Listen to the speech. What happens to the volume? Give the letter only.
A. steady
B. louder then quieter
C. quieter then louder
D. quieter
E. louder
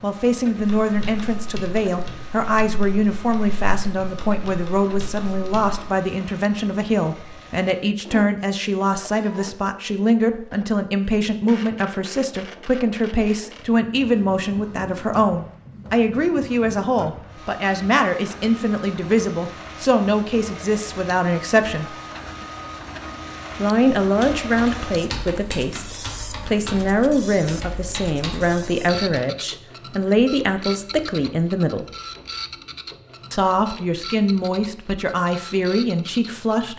A.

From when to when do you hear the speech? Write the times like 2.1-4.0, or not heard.
0.0-21.9, 23.6-31.9, 33.3-36.7.